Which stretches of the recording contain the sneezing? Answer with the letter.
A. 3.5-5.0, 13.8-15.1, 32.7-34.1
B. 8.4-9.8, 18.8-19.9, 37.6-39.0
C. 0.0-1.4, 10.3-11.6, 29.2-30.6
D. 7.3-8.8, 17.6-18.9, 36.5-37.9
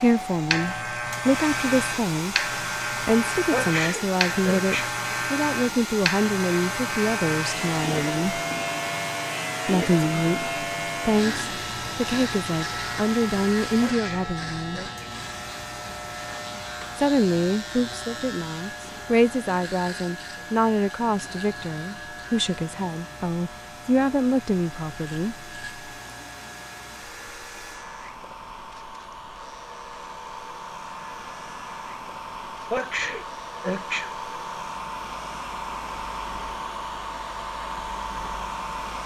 A.